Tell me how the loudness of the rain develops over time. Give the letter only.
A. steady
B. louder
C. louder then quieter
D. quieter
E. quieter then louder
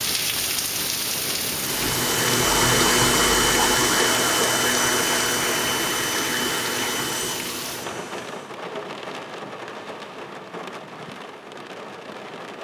D.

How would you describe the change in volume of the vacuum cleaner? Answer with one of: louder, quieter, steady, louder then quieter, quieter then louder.
quieter.